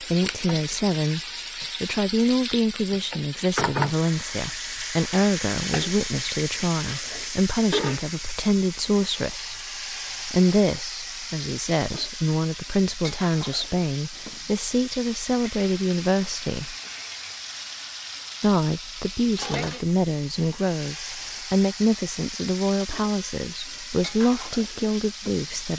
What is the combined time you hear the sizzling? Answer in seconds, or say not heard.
26 s.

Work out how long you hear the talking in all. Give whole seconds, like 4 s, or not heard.
23 s.